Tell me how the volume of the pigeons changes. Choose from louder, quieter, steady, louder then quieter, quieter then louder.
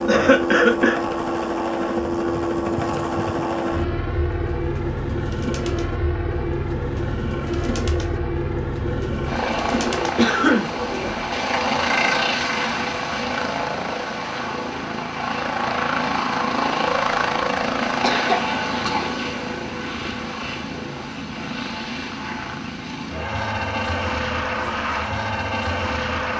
louder.